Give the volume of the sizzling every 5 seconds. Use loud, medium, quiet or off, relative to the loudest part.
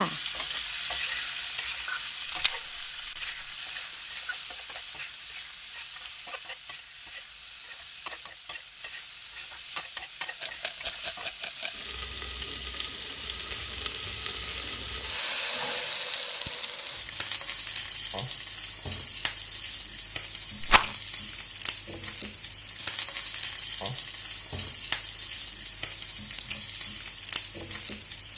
loud, medium, loud, loud, loud, loud.